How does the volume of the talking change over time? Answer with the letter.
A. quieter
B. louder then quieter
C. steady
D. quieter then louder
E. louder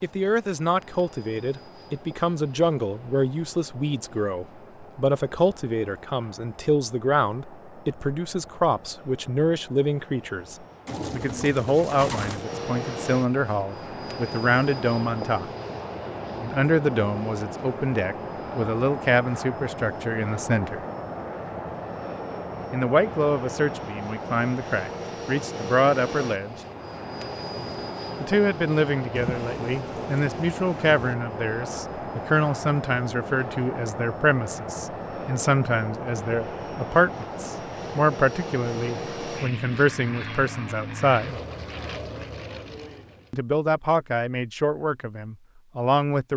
C.